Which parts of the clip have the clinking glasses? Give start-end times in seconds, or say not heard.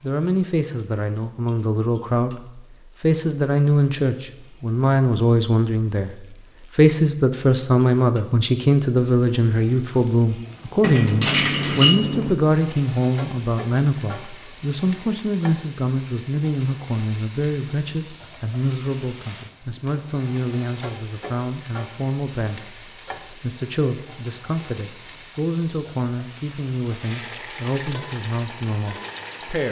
10.8-12.3.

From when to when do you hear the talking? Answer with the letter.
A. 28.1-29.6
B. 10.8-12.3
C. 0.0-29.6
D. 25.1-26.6
C.